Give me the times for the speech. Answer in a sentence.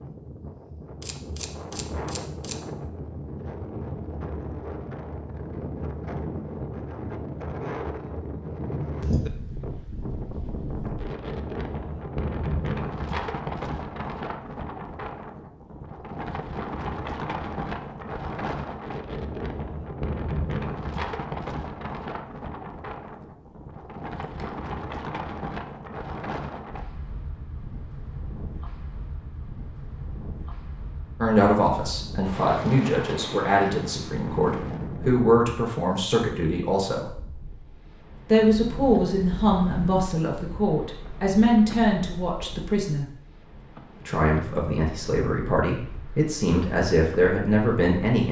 The speech can be heard from 31.2 to 37.1 s, from 38.2 to 43.0 s and from 44.0 to 48.2 s.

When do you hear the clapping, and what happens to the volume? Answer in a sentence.
The clapping can't be heard in this clip.